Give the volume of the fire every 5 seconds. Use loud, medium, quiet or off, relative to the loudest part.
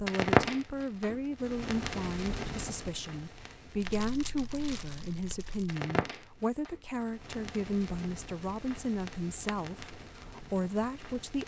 loud, medium, quiet.